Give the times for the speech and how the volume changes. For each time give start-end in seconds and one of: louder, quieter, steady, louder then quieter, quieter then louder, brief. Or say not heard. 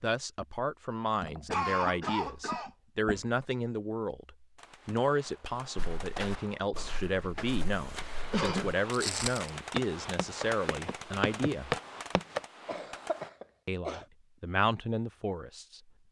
0.0-11.8 steady
13.7-15.8 brief.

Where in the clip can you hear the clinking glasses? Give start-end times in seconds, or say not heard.
not heard.